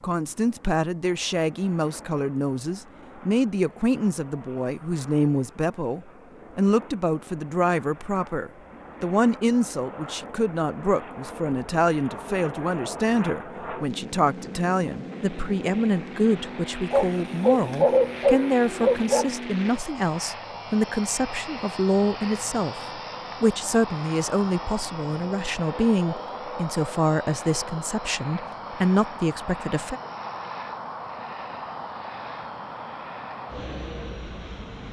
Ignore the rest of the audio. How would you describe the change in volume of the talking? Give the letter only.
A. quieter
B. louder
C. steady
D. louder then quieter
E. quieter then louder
C.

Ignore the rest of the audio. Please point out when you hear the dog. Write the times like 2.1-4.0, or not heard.
16.9-19.4.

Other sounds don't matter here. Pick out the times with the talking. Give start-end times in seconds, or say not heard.
0.0-22.8, 23.4-30.0.